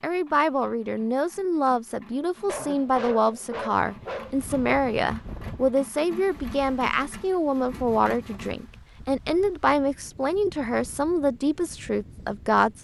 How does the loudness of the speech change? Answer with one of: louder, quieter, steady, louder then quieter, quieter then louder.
steady.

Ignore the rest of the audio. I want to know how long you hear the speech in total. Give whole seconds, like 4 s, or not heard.
13 s.